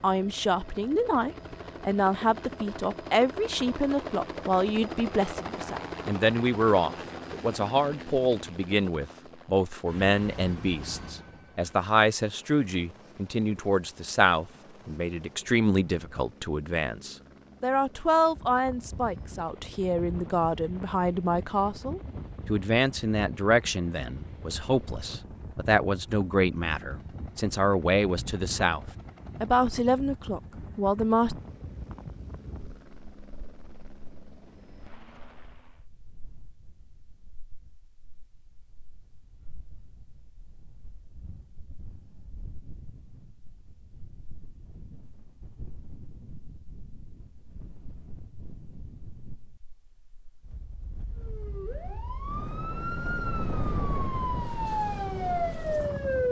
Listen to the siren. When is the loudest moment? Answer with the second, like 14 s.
56 s.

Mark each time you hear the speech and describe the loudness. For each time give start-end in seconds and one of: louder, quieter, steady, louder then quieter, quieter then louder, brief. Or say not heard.
0.0-31.4 steady.